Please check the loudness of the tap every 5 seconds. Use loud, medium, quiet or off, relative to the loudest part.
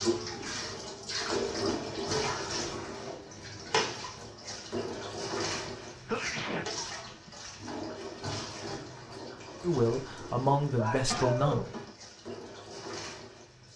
loud, medium, medium.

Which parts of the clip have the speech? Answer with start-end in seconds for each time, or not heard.
9.6-11.7.